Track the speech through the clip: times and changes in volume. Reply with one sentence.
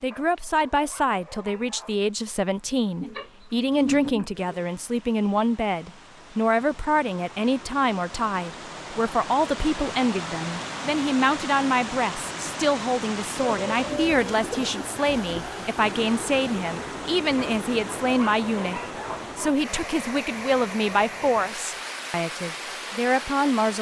You can hear the speech from 0.0 to 23.7 s, at a steady volume.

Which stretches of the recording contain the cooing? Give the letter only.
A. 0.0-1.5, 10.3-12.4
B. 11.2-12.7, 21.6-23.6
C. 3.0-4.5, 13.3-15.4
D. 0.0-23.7
C.